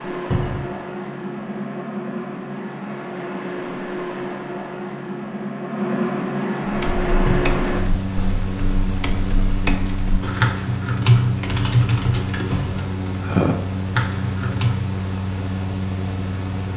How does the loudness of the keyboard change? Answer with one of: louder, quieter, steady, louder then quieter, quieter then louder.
louder.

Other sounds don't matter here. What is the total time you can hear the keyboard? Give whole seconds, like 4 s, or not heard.
8 s.